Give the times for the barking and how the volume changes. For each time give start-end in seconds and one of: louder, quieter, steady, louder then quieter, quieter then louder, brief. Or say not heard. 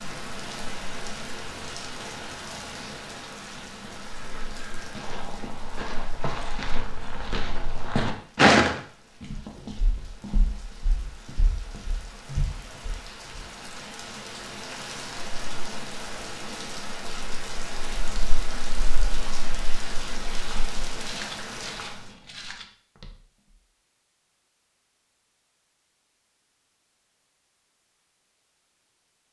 not heard.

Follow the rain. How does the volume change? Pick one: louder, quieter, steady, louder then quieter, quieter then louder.
quieter then louder.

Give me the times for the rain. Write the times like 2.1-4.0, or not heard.
0.0-21.9.